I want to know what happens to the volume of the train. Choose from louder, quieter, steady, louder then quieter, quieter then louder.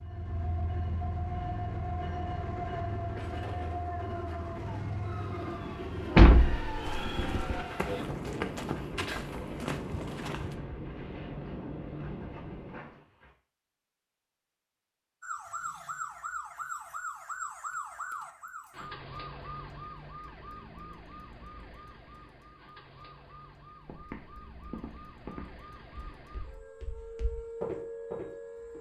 steady.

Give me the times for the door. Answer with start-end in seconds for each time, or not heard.
6.2-7.7.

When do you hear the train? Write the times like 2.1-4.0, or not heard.
0.0-13.0.